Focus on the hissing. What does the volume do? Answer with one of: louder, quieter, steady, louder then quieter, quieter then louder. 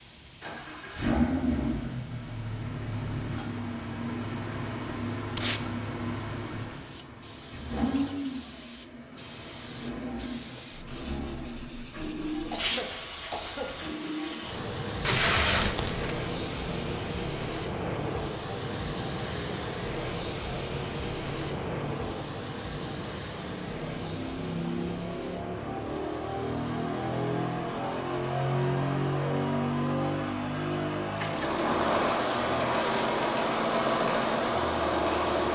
louder then quieter.